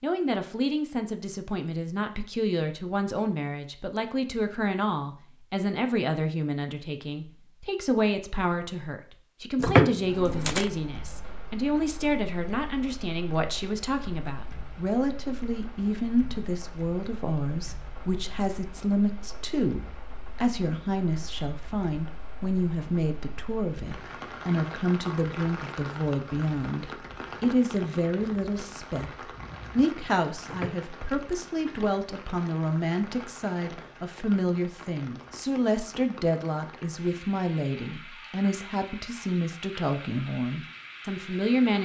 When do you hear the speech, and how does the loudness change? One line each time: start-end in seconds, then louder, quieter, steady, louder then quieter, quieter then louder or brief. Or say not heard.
0.0-41.8 steady.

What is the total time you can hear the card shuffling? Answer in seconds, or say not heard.
2 s.